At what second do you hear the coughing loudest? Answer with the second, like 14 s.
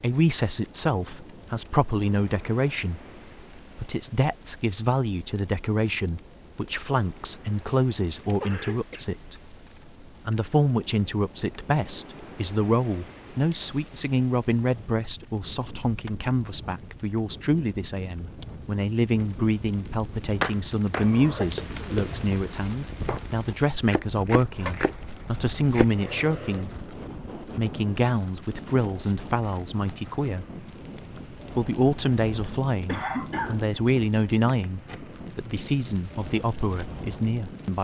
33 s.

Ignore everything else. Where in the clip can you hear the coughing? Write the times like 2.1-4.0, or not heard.
8.3-9.1, 21.0-22.0, 32.9-33.6.